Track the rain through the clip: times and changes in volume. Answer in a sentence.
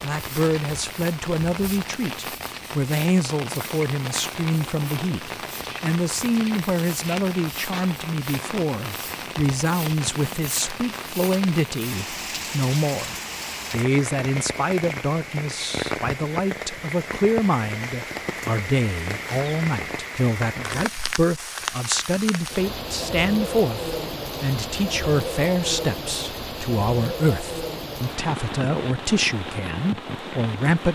The rain can be heard from 0.0 to 30.8 s, at a steady volume.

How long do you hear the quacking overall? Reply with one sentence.
You can't hear the quacking here.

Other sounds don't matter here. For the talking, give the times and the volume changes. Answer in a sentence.
You can hear the talking from 0.0 to 30.8 s, at a steady volume.